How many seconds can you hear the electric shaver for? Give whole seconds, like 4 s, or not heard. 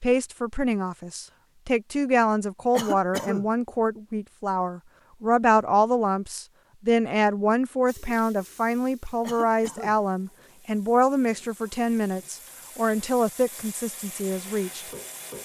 not heard.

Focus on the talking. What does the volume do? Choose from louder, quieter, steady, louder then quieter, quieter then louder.
steady.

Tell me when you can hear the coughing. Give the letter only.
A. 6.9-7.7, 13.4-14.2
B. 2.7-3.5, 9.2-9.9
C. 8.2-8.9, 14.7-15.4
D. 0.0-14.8
B.